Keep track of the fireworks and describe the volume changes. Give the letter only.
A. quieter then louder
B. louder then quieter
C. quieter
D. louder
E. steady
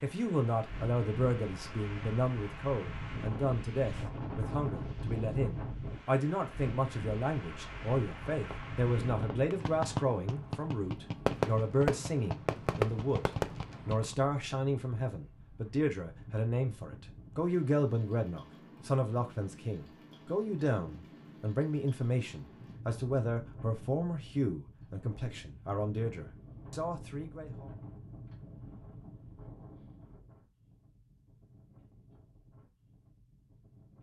D.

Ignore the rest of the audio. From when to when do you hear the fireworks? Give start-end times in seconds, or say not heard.
8.3-14.2.